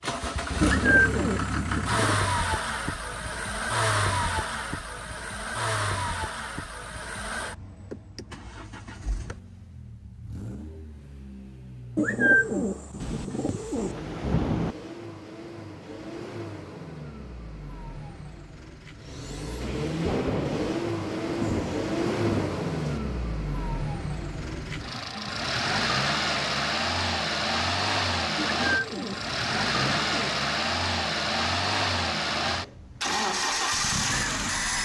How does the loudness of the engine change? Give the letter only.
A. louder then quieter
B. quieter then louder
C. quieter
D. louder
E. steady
B.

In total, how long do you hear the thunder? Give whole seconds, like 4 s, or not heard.
5 s.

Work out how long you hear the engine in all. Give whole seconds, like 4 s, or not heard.
35 s.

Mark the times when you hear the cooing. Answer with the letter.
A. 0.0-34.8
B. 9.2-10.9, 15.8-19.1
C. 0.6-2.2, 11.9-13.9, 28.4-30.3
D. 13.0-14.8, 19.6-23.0
C.